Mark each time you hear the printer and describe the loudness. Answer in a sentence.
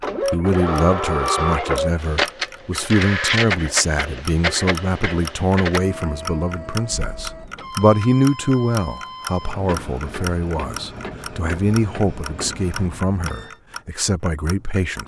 You can hear the printer from 0.0 to 13.6 s, getting quieter.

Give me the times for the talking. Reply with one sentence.
You can hear the talking from 0.3 to 15.0 s.